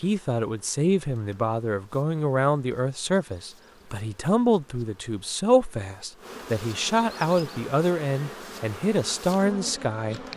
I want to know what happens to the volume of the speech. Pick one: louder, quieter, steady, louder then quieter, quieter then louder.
steady.